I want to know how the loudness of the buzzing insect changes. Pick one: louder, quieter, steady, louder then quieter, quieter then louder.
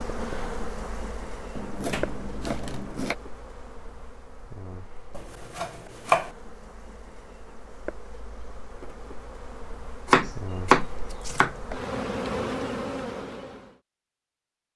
quieter then louder.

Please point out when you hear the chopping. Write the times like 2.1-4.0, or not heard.
1.6-3.1, 5.2-6.3, 10.1-11.5.